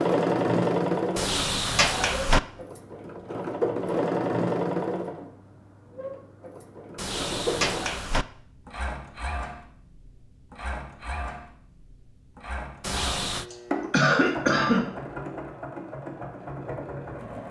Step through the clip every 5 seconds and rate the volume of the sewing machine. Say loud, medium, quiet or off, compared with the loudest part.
loud, medium, medium, medium.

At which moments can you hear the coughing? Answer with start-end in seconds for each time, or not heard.
13.5-14.8.